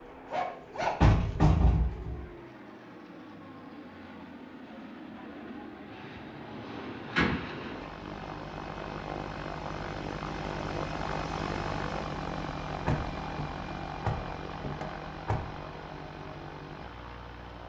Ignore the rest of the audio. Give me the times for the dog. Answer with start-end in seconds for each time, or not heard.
0.0-1.4.